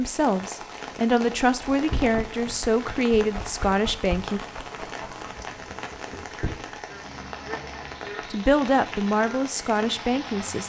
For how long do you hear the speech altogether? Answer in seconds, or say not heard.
7 s.